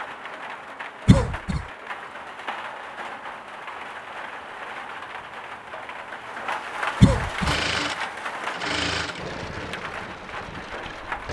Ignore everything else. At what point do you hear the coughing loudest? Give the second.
7 s.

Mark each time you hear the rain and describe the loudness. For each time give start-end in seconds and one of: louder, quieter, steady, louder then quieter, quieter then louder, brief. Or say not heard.
0.0-11.2 louder then quieter.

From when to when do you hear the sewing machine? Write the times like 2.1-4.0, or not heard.
7.5-11.2.